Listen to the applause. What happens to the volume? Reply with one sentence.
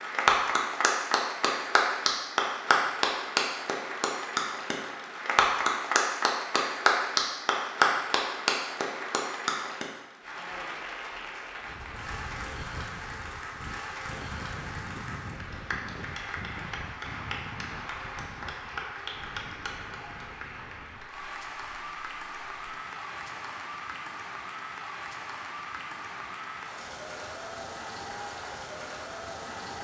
The loudness of the applause goes down.